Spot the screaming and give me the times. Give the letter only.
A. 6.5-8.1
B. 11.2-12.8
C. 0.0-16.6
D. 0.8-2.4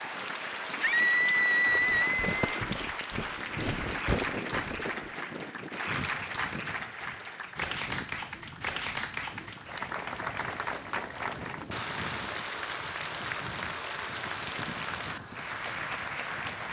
D.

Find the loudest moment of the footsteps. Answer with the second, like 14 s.
4 s.